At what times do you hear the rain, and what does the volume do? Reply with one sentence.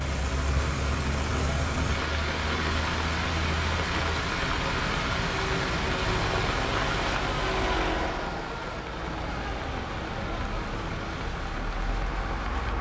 The rain can be heard from 0.0 to 12.7 s, getting quieter.